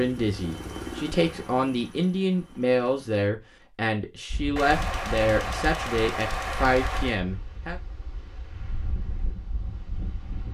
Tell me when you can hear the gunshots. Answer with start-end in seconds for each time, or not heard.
4.5-7.2.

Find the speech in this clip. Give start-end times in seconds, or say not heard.
0.0-7.8.